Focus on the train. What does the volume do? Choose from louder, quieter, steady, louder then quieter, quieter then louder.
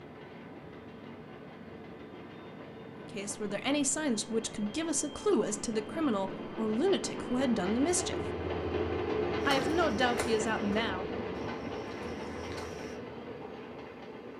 louder then quieter.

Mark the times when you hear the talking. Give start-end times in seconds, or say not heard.
3.1-8.3, 9.4-11.1.